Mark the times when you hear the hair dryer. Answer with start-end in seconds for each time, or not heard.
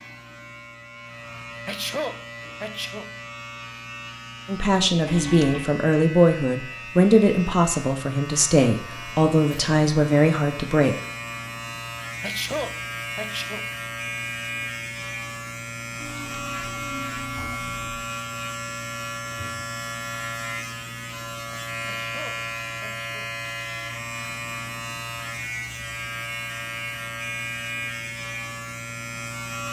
not heard.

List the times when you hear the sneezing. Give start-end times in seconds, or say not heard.
1.6-3.1, 12.1-13.7, 21.8-23.3.